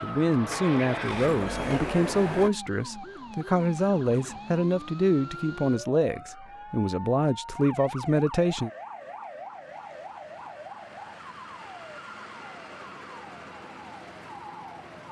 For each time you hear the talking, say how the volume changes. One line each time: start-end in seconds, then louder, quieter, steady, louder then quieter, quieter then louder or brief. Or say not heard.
0.0-8.7 steady.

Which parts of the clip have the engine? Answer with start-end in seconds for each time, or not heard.
0.0-2.5.